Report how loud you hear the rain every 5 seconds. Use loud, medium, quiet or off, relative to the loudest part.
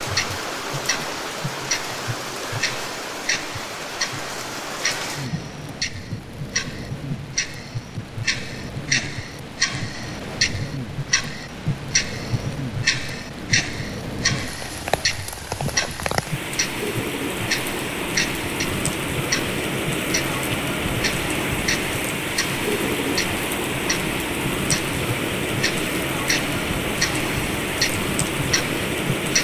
medium, medium, medium, loud, loud, loud.